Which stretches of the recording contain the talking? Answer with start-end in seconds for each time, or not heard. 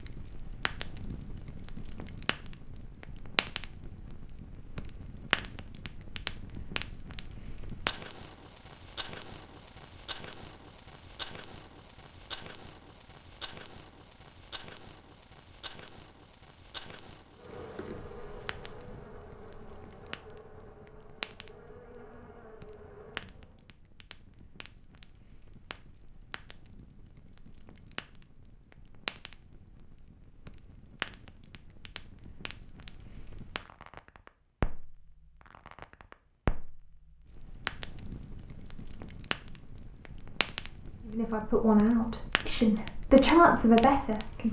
41.0-44.4.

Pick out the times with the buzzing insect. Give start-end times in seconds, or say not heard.
17.3-23.8.